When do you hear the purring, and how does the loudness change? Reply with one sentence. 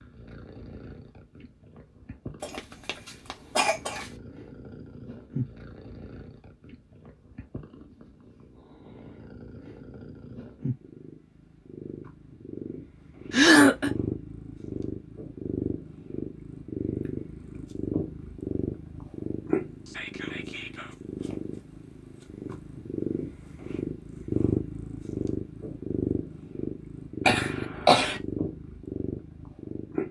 You can hear the purring from 0.0 to 30.0 s, getting louder.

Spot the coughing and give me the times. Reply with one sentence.
You can hear the coughing from 2.4 to 4.1 s, from 13.3 to 13.9 s and from 27.2 to 28.2 s.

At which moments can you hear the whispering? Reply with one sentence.
The whispering can be heard from 19.9 to 20.9 s.